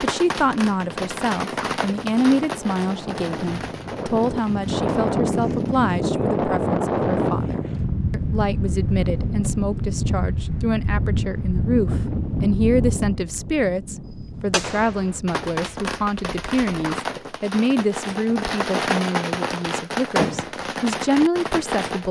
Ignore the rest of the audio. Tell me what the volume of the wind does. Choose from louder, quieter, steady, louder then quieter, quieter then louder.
louder then quieter.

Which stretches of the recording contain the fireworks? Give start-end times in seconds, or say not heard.
0.0-5.9, 14.5-22.0.